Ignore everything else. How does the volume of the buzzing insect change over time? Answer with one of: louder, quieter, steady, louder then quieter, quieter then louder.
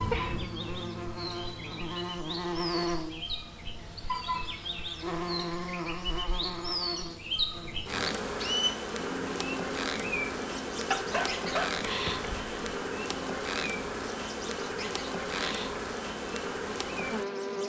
steady.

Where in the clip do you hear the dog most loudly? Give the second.
11 s.